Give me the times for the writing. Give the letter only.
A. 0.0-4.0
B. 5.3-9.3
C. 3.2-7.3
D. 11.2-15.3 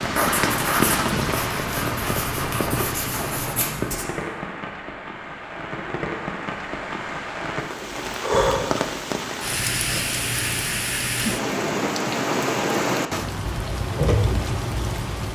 A.